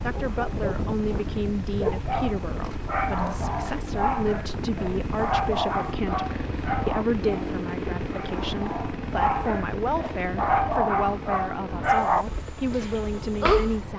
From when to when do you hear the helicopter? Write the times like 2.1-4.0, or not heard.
0.0-13.9.